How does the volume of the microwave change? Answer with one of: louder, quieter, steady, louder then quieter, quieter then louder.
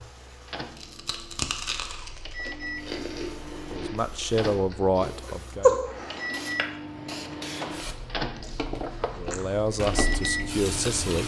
louder.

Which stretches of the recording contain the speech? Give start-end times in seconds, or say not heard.
3.7-5.8, 9.2-11.2.